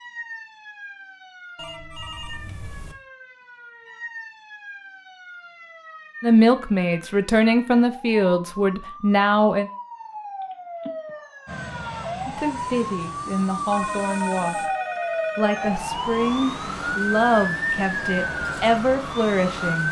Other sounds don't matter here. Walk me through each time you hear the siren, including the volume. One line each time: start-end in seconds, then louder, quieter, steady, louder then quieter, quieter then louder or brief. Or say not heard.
0.0-19.8 louder.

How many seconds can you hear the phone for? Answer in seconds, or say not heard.
4 s.